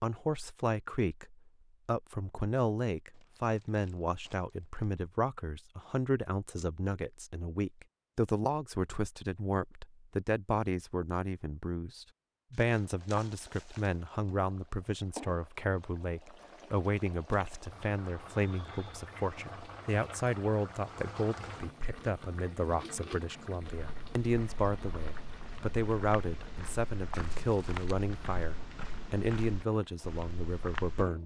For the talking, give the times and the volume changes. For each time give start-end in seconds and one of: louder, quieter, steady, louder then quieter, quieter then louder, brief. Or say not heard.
0.0-31.2 steady.